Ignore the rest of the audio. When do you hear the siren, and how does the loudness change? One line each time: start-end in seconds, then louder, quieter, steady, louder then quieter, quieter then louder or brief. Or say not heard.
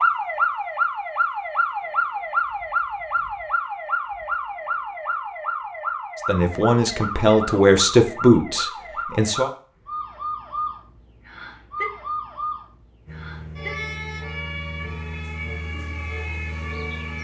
0.0-17.1 quieter.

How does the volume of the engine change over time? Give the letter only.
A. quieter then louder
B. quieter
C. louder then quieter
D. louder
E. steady
E.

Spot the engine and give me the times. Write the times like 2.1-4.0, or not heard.
13.1-17.1.